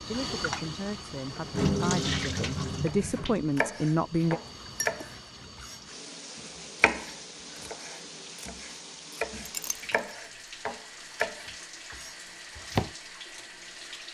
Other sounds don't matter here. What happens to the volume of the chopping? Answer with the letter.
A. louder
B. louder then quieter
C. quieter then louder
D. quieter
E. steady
C.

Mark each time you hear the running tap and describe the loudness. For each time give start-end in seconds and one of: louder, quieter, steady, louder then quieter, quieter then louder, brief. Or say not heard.
0.0-14.0 quieter.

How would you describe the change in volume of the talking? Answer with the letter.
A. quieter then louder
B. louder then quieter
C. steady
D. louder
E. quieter
D.